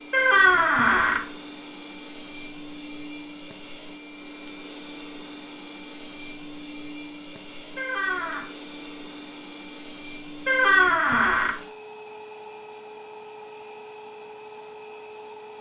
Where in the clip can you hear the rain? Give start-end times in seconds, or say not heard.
not heard.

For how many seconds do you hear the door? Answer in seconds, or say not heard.
3 s.